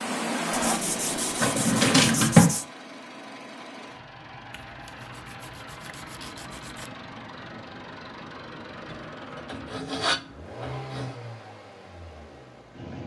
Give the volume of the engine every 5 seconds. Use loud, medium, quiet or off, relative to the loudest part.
loud, medium, medium.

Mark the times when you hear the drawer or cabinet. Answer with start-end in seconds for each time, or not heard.
1.4-2.5.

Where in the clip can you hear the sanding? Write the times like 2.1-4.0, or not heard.
0.5-2.6, 4.5-6.9, 8.8-11.2.